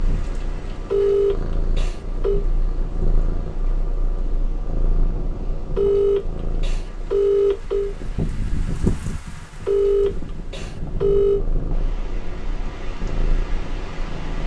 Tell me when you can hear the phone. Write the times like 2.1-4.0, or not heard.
0.9-2.5, 5.8-8.0, 9.7-11.4.